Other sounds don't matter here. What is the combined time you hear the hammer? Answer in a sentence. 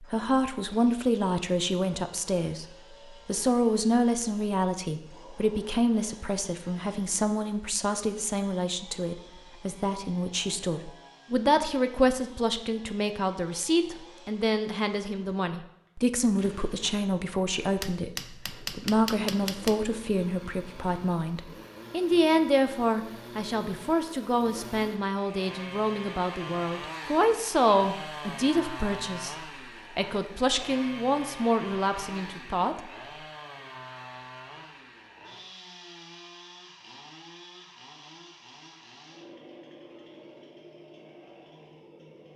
The hammer can be heard for 2 seconds in total.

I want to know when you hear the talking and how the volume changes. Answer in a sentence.
You can hear the talking from 0.0 to 32.9 s, at a steady volume.